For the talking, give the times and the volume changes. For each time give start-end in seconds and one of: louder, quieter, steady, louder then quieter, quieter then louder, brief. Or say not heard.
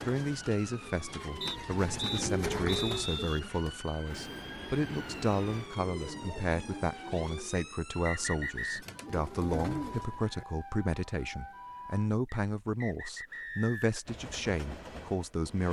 0.0-15.6 steady.